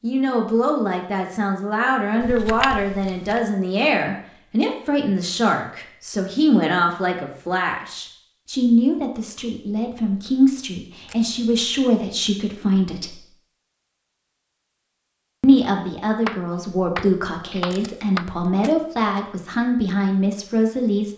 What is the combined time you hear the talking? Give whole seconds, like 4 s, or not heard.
19 s.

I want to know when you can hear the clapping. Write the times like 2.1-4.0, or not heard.
16.2-18.7.